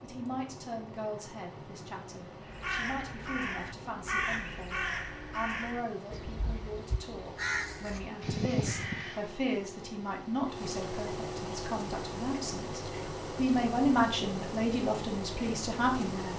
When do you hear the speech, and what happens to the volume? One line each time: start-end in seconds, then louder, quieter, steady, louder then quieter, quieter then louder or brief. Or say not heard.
0.0-16.3 louder.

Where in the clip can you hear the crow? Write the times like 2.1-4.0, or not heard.
2.5-9.2.